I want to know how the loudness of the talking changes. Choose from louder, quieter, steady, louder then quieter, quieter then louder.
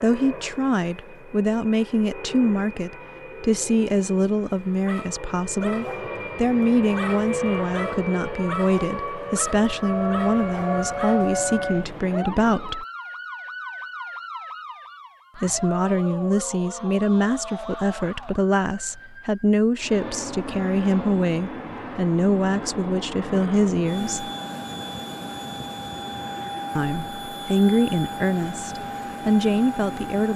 steady.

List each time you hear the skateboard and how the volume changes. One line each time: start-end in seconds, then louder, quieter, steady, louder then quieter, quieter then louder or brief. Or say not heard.
not heard.